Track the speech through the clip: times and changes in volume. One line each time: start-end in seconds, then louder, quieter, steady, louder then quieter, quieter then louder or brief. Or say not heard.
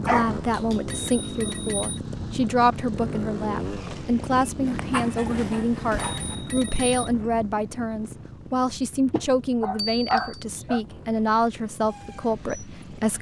0.0-13.1 steady.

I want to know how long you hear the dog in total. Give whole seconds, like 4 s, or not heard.
4 s.